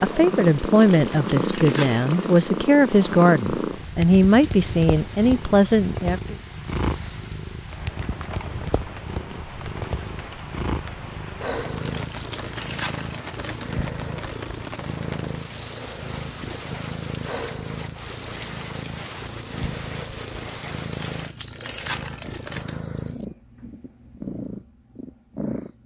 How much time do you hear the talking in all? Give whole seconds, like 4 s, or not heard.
6 s.